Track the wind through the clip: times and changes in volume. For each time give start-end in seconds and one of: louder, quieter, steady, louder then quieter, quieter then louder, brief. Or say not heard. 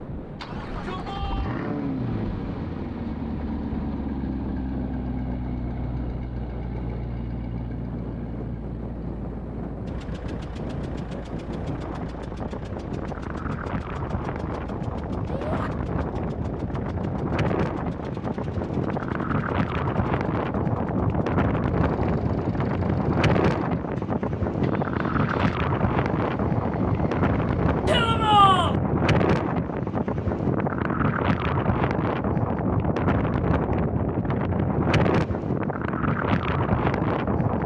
0.0-37.6 louder.